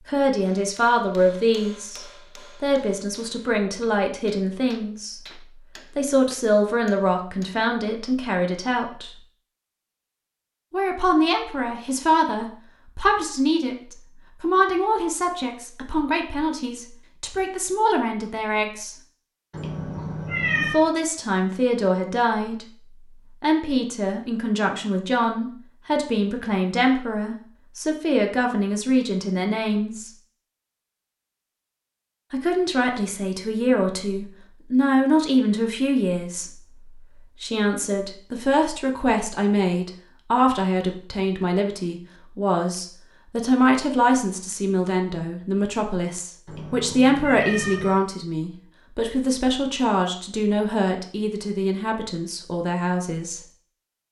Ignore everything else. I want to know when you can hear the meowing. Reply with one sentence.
You can hear the meowing from 19.5 to 20.8 s and from 46.5 to 48.0 s.